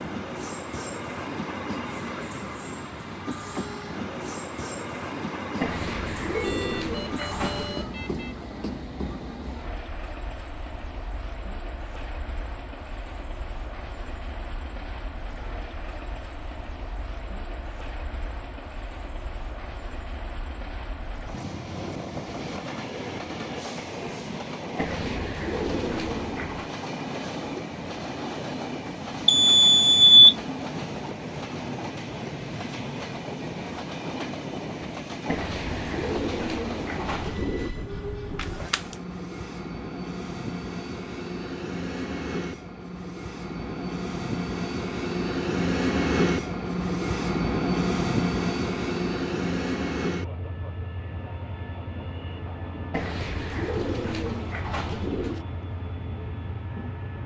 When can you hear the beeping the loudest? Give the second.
30 s.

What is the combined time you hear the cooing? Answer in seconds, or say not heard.
9 s.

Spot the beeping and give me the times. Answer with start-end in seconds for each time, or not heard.
6.3-8.3, 28.9-30.4, 38.4-38.8.